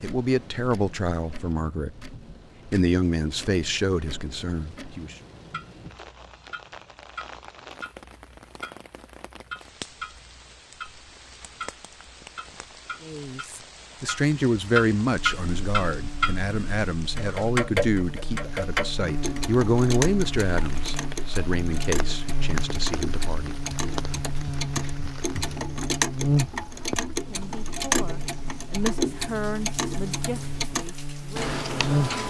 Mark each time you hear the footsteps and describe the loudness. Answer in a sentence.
You can't hear the footsteps here.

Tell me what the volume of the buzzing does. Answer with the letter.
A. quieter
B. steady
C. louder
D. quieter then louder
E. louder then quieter
E.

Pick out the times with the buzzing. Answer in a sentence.
You can hear the buzzing from 15.2 to 32.2 s.